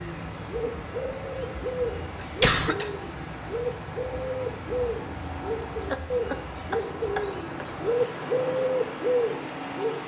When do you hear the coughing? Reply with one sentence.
You can hear the coughing from 2.2 to 2.9 s and from 5.8 to 7.7 s.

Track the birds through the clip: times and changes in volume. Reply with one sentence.
The birds can be heard from 0.0 to 10.0 s, getting louder.